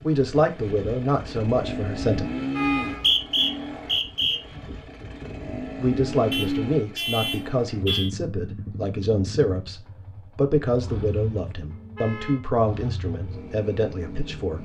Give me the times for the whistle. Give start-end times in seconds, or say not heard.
2.8-4.4.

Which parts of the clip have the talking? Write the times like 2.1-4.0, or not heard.
0.0-2.2, 5.8-14.6.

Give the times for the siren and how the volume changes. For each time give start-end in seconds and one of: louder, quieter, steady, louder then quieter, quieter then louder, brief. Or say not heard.
not heard.